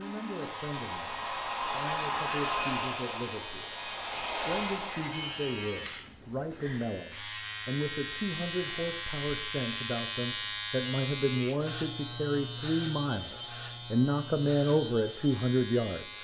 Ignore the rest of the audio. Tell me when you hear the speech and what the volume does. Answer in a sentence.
The speech can be heard from 0.0 to 16.1 s, getting louder.